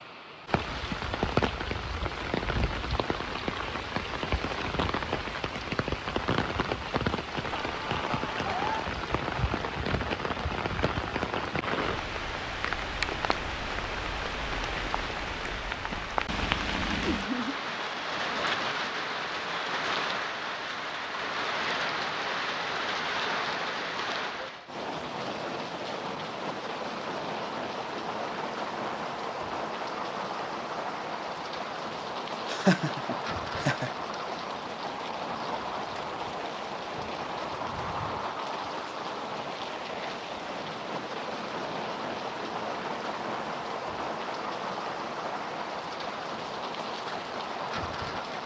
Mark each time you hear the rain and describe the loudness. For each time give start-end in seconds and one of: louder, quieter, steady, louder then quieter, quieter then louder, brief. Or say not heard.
0.0-48.4 steady.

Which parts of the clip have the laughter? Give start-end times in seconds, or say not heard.
7.5-8.9, 17.0-17.6, 32.5-33.9.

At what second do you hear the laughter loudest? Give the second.
33 s.